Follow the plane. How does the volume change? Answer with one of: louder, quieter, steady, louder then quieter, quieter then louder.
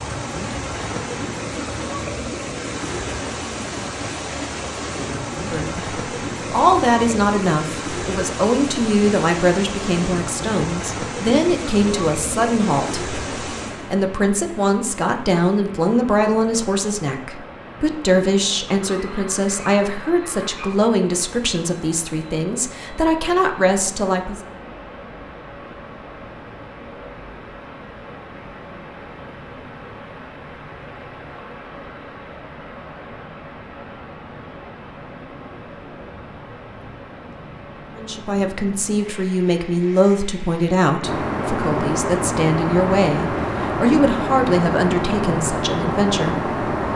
steady.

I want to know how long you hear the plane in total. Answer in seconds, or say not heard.
6 s.